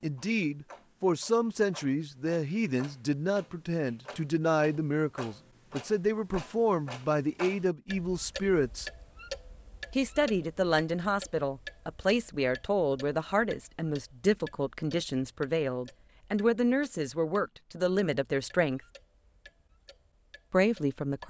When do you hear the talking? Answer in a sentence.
The talking can be heard from 0.0 to 8.9 s, from 9.9 to 18.8 s and from 20.5 to 21.2 s.